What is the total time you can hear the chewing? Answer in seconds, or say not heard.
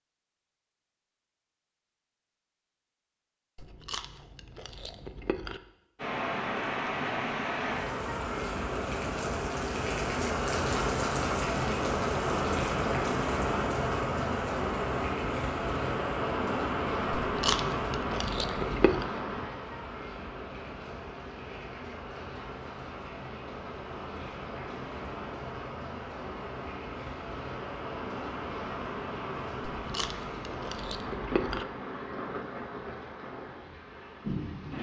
6 s.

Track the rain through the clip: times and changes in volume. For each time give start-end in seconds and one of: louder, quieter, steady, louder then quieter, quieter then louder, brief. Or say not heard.
6.0-34.7 quieter.